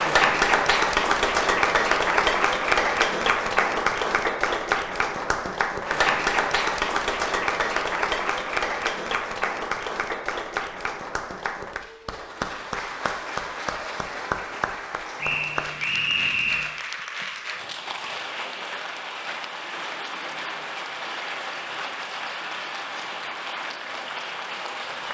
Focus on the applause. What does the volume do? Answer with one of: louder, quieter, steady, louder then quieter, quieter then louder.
quieter.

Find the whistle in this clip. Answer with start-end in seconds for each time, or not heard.
15.2-16.8.